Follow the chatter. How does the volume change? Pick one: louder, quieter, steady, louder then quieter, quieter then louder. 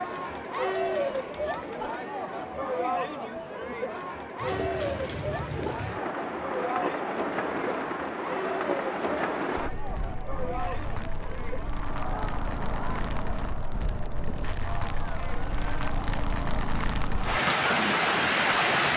quieter.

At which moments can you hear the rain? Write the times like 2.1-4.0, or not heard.
4.3-18.9.